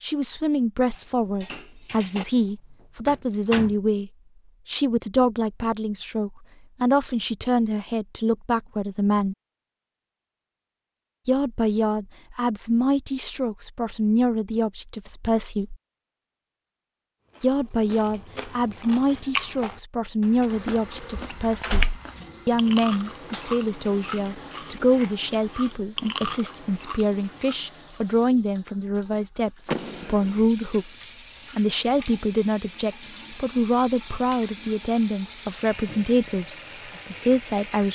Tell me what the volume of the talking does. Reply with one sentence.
The loudness of the talking stays about the same.